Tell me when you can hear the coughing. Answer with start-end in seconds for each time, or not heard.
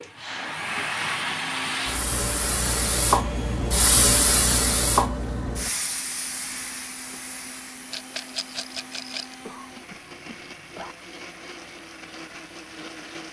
9.4-10.9.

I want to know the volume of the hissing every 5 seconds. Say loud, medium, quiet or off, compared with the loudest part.
loud, medium, quiet.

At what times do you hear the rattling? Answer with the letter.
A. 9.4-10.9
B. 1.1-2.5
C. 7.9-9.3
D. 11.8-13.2
C.